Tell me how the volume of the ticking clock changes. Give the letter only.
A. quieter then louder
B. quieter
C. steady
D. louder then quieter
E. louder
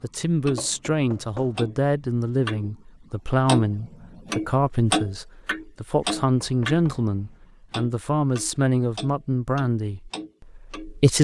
D.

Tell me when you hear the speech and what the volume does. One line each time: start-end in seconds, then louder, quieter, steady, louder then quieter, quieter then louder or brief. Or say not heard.
0.0-11.1 steady.